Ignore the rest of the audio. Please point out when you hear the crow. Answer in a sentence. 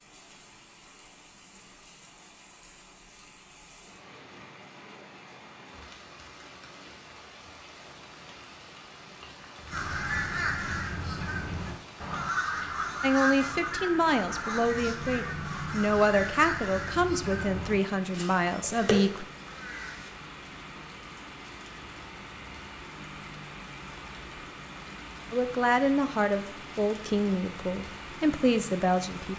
The crow can be heard from 9.7 to 20.1 s.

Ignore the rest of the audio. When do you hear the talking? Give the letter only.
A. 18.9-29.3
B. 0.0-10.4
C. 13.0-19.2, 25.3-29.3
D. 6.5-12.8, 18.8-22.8
C.